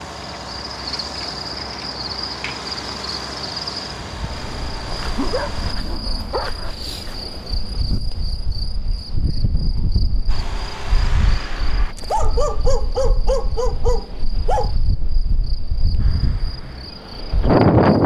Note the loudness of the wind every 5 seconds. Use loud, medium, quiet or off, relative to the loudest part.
off, quiet, quiet, loud.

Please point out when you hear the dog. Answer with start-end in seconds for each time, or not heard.
5.0-6.7, 11.9-14.7.